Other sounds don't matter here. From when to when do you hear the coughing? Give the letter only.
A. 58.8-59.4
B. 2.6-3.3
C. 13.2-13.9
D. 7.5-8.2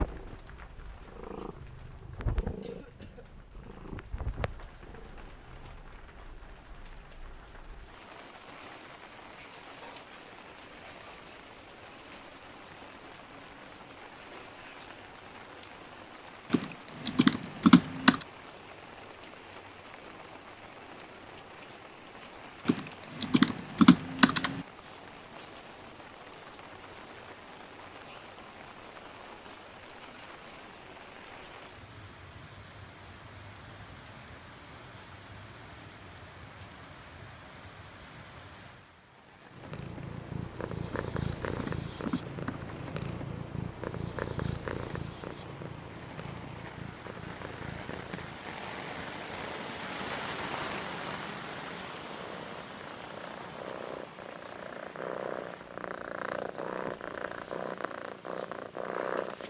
B.